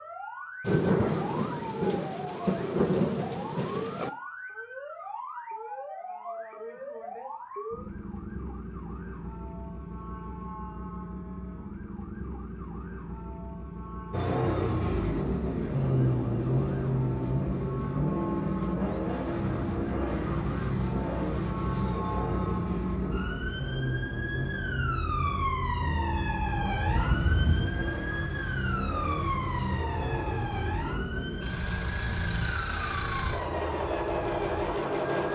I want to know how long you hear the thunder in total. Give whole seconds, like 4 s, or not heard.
5 s.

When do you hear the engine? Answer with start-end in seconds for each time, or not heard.
14.1-35.3.